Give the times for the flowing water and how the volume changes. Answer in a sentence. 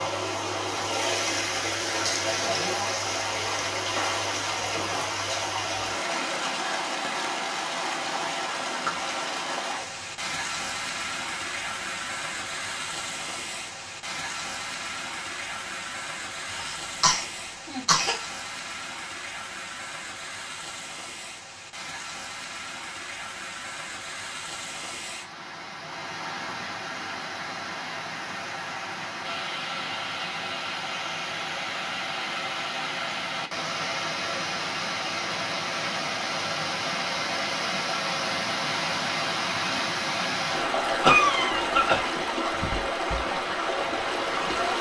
The flowing water can be heard from 0.0 to 44.7 s, getting quieter then louder.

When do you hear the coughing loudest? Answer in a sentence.
The loudest moment of the coughing is at 41 seconds.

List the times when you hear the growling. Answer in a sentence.
You can't hear the growling here.